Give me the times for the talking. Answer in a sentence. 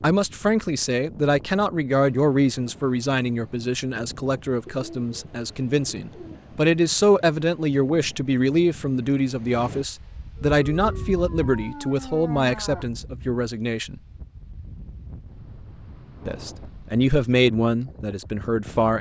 You can hear the talking from 0.0 to 14.0 s and from 16.2 to 18.9 s.